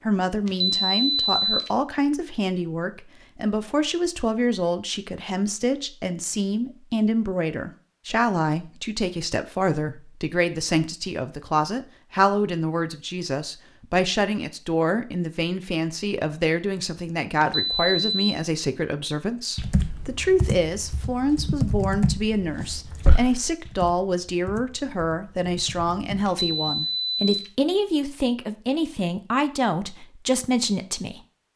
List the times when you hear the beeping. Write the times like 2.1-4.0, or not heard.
0.5-1.7, 17.4-18.4, 26.2-27.5.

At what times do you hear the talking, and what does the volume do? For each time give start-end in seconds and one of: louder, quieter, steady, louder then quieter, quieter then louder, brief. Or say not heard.
0.0-31.5 steady.